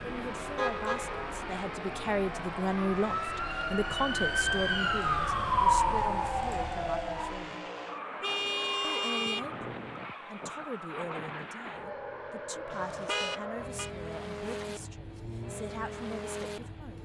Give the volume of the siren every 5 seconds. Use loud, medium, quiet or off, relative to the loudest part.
medium, loud, off, off.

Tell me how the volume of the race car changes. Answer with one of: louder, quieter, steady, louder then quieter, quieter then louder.
steady.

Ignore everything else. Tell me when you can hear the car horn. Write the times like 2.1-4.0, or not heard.
0.6-1.4, 8.2-9.4, 12.7-13.9.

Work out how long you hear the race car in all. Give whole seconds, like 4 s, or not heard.
17 s.